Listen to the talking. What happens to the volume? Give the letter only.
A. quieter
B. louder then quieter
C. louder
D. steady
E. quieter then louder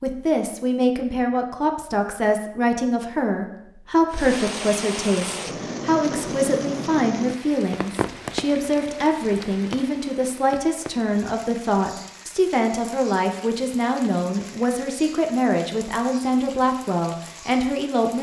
D.